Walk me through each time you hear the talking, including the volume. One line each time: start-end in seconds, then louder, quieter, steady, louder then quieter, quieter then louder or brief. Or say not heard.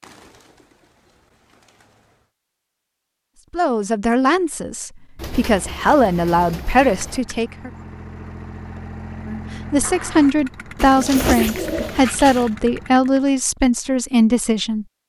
3.5-7.7 quieter then louder
9.2-14.8 steady.